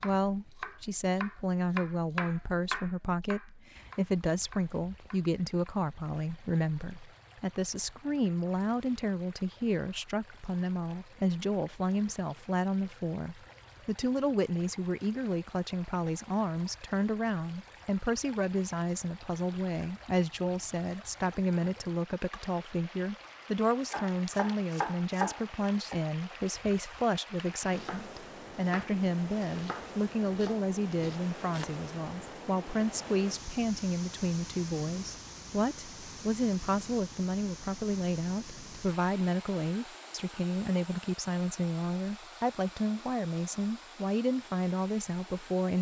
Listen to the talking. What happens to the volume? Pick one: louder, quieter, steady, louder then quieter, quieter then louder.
steady.